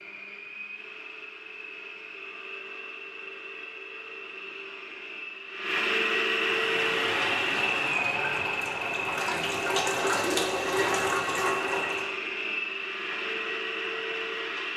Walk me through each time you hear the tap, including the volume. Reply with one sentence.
You can hear the tap from 6.5 to 12.2 s, getting louder.